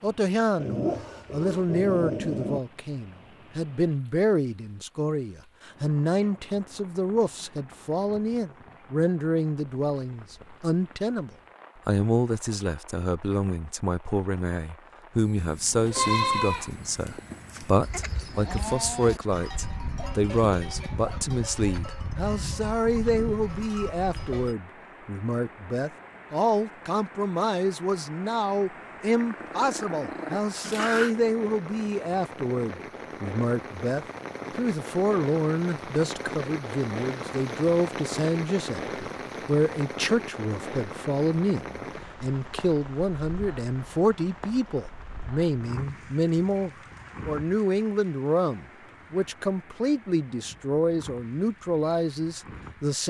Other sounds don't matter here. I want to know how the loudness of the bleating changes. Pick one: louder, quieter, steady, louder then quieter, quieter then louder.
quieter.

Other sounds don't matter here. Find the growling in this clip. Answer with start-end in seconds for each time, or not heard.
0.6-2.6, 29.1-31.1.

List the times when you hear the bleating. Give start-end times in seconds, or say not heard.
15.2-24.6.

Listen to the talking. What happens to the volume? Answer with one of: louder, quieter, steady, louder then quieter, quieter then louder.
steady.